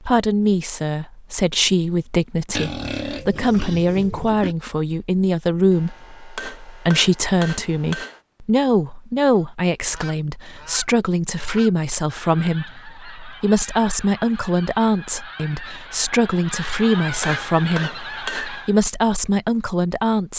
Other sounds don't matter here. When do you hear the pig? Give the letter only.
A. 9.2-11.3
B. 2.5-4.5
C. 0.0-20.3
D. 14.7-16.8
B.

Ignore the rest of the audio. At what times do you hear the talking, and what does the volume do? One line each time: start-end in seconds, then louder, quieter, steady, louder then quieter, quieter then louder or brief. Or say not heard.
0.0-20.3 steady.